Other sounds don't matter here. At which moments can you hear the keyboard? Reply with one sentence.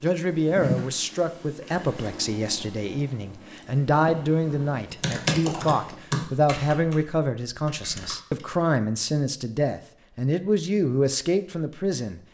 You can hear the keyboard from 4.9 to 8.6 s.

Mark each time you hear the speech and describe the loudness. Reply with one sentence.
The speech can be heard from 0.0 to 12.2 s, at a steady volume.